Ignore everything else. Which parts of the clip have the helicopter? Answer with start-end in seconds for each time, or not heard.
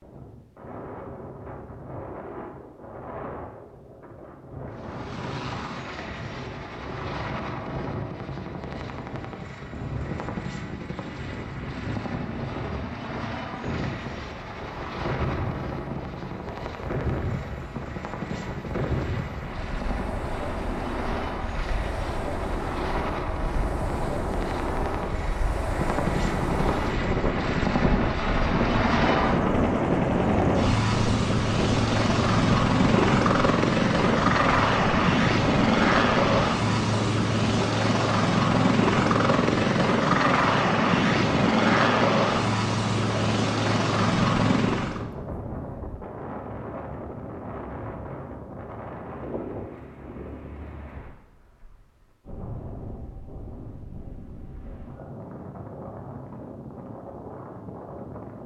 4.7-45.0.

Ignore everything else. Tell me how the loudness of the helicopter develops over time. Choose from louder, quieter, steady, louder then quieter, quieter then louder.
louder.